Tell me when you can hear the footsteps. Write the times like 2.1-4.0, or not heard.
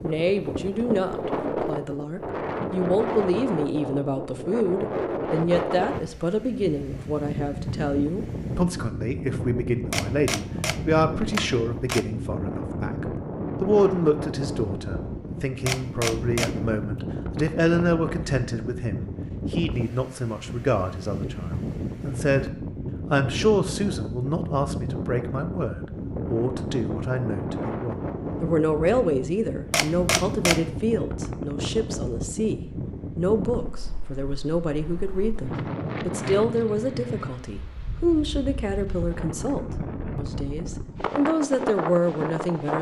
not heard.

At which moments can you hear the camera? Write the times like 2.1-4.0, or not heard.
9.9-12.1, 15.7-16.6, 29.7-30.6.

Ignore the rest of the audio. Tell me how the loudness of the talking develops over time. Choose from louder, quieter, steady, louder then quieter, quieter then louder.
steady.